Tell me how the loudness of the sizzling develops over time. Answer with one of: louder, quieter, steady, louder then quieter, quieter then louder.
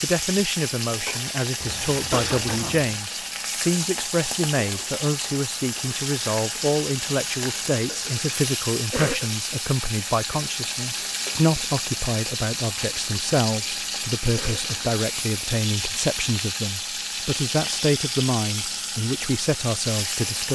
steady.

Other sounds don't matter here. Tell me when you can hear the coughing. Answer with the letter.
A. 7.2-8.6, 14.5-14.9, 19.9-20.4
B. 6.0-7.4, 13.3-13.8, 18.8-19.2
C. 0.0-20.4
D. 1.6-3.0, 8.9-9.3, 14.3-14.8
D.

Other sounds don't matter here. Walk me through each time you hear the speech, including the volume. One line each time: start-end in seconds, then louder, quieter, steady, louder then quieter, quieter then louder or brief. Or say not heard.
0.0-20.4 steady.